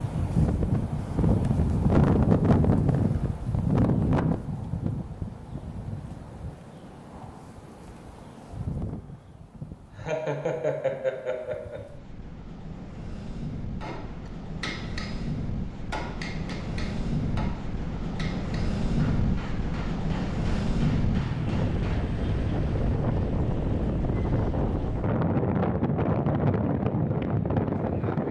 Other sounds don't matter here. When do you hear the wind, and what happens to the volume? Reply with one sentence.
You can hear the wind from 0.0 to 28.2 s, getting quieter then louder.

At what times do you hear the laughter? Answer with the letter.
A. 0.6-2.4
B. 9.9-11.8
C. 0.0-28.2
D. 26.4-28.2
B.